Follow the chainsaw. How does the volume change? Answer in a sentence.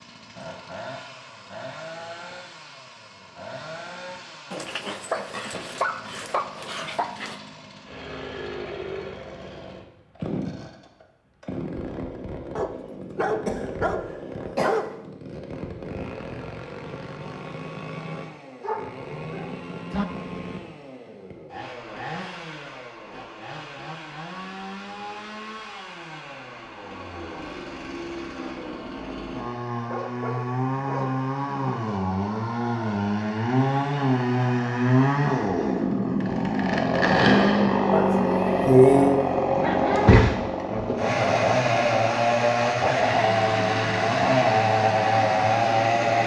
The loudness of the chainsaw goes up.